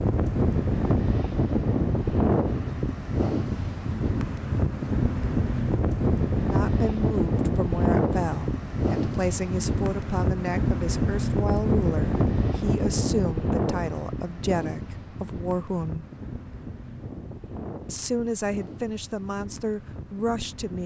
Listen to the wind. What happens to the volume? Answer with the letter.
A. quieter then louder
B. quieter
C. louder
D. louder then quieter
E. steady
B.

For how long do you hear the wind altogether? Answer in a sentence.
You can hear the wind for 21 seconds altogether.